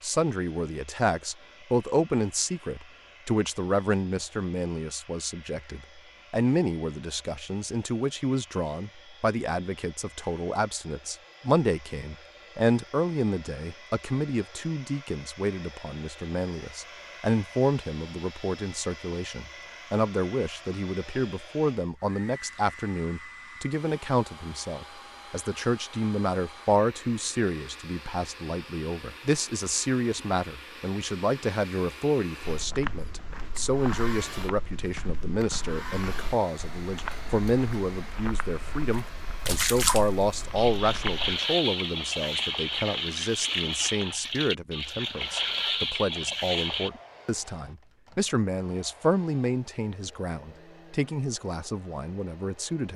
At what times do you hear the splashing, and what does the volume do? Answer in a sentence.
You can hear the splashing from 38.9 to 46.9 s, at a steady volume.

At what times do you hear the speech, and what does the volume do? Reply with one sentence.
You can hear the speech from 0.0 to 52.9 s, at a steady volume.